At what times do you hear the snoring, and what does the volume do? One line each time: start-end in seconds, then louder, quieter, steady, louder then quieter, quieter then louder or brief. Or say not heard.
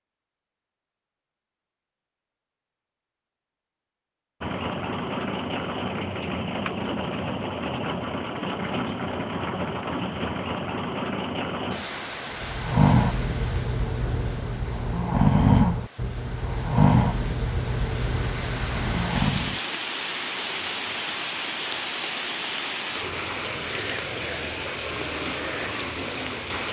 12.4-19.6 quieter.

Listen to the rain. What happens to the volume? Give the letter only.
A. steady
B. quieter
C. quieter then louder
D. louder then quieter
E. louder
C.